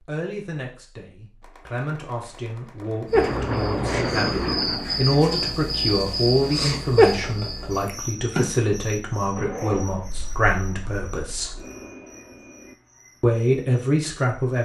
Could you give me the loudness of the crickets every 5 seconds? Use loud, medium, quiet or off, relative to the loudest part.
loud, loud, quiet.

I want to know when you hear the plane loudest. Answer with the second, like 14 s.
4 s.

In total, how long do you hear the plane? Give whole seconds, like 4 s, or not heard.
6 s.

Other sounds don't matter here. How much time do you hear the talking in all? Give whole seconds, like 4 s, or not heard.
13 s.